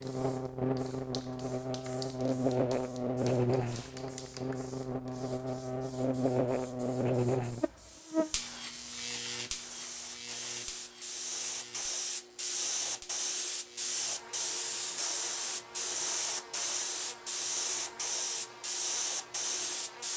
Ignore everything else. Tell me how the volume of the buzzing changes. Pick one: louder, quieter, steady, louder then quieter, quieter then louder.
quieter.